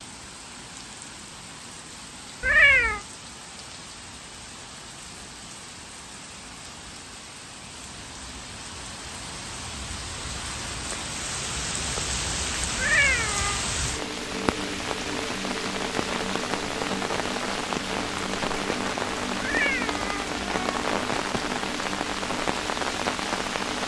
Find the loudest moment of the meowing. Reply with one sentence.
The loudest moment of the meowing is at 3 seconds.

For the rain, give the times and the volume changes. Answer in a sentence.
The rain can be heard from 0.0 to 23.8 s, getting louder.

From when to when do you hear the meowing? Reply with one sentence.
You can hear the meowing from 2.4 to 3.0 s, from 12.8 to 13.6 s and from 19.4 to 20.7 s.